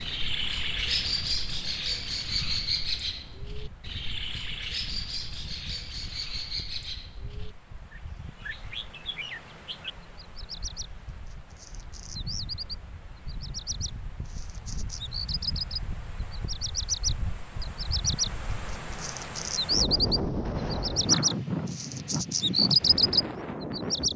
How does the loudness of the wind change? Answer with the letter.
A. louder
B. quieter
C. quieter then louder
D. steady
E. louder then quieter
A.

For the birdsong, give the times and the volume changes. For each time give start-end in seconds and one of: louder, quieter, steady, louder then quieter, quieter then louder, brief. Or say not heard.
0.0-24.1 quieter then louder.